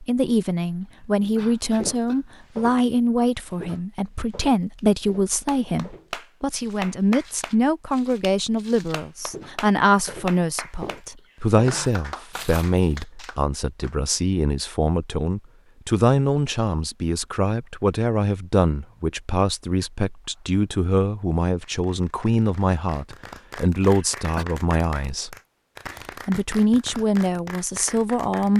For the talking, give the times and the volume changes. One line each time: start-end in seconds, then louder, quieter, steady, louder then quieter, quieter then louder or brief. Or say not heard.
0.0-25.4 steady
26.2-28.5 brief.